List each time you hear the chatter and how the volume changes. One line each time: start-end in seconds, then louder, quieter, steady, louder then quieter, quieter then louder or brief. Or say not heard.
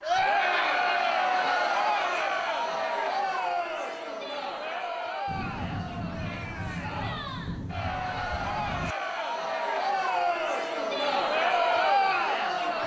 0.0-12.8 quieter then louder.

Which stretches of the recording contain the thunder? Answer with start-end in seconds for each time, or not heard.
5.2-8.9.